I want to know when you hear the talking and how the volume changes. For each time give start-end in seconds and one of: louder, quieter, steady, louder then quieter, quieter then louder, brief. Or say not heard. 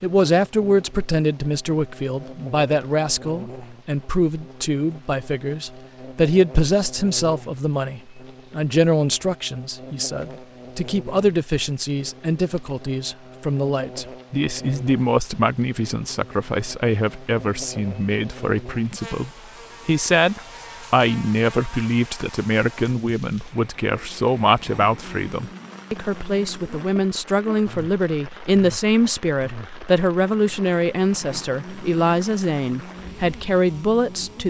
0.0-34.4 steady.